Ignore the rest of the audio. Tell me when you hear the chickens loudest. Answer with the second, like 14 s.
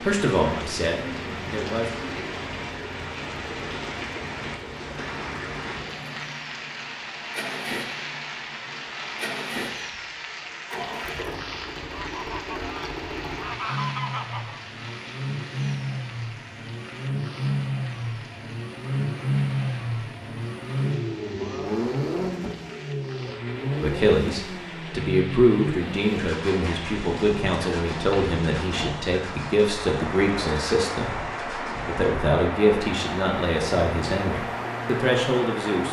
14 s.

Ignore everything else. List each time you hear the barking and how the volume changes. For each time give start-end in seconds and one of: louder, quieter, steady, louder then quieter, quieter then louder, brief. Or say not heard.
not heard.